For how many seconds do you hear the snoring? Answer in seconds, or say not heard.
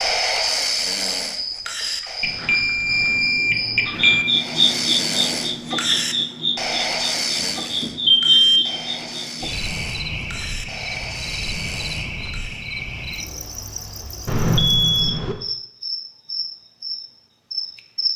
11 s.